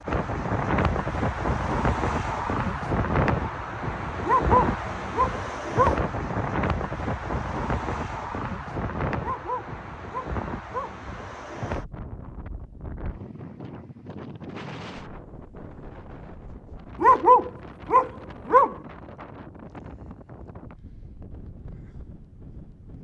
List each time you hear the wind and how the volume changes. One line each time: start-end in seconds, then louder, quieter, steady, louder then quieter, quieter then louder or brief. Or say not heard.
0.0-22.9 quieter.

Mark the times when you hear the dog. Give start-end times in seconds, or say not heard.
4.2-6.0, 9.2-10.9, 17.0-18.8.